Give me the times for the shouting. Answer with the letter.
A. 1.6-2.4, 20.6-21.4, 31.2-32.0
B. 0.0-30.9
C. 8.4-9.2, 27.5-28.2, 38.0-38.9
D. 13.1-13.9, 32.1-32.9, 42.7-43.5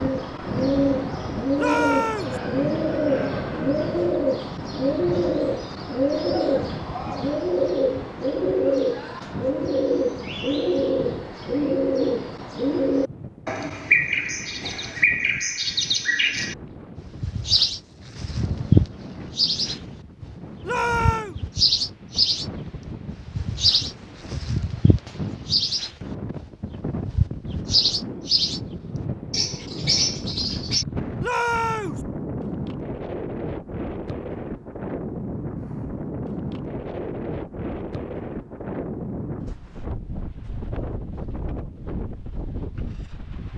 A.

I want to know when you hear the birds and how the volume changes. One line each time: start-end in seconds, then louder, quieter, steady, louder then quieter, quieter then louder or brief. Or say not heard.
0.0-30.9 steady.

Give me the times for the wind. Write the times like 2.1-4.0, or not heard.
0.0-43.5.